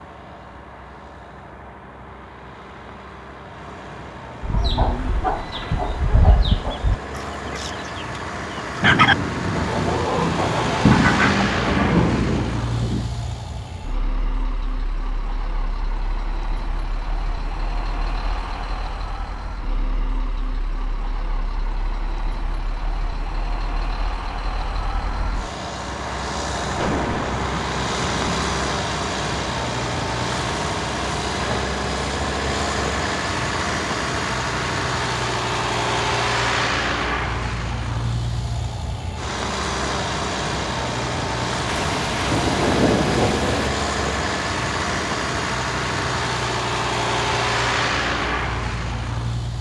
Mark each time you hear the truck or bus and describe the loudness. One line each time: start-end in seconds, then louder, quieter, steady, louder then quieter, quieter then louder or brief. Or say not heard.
0.0-49.5 louder.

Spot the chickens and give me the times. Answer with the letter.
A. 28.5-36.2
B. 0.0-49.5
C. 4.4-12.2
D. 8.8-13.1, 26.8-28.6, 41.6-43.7
C.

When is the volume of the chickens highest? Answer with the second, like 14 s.
9 s.